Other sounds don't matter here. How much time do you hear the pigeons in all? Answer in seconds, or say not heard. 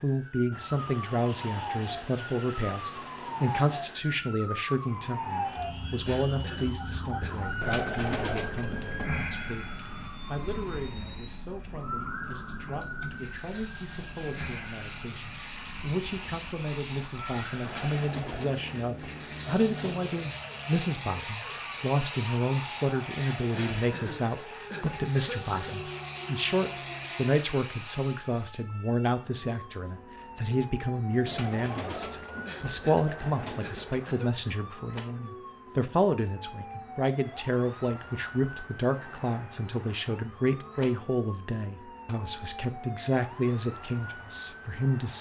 7 s.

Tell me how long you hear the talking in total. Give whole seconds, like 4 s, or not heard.
45 s.